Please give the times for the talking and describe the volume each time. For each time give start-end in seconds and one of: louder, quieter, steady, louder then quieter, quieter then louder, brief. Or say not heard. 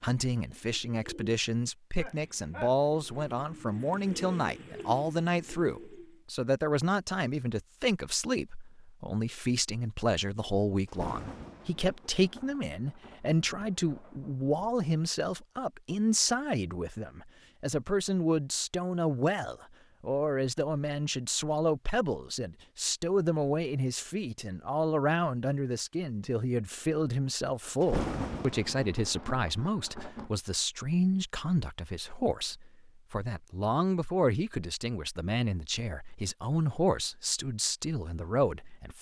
0.0-38.9 steady.